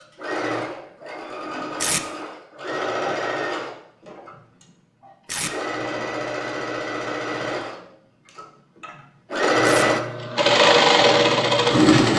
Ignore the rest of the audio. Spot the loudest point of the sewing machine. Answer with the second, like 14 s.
11 s.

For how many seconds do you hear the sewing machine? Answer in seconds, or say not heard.
12 s.